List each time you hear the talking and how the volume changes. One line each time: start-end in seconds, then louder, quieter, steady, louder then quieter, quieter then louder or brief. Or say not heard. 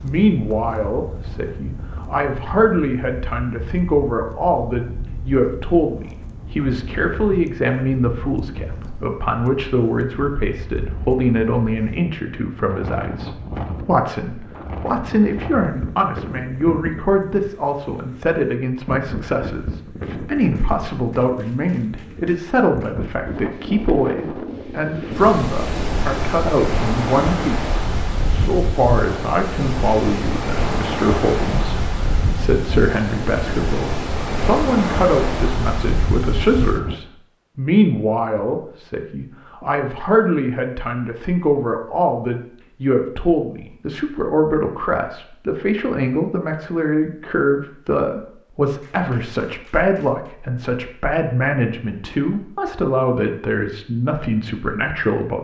0.0-55.3 steady.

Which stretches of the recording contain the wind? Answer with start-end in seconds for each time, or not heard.
0.0-37.0.